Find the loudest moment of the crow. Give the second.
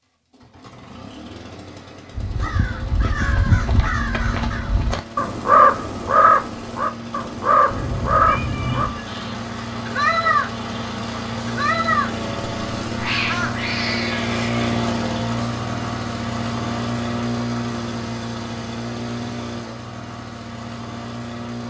6 s.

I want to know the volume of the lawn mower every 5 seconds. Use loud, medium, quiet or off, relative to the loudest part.
quiet, medium, loud, loud, medium.